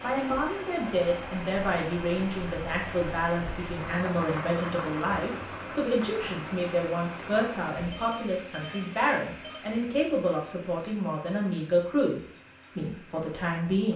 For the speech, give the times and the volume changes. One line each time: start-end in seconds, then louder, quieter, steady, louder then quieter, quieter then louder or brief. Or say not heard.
0.0-13.9 steady.